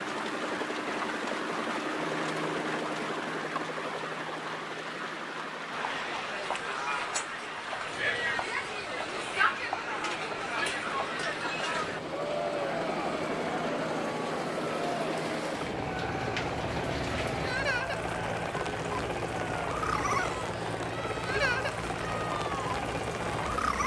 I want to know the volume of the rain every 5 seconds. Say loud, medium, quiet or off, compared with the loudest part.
loud, medium, medium, loud, loud.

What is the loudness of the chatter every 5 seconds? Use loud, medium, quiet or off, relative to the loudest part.
off, loud, loud, medium, medium.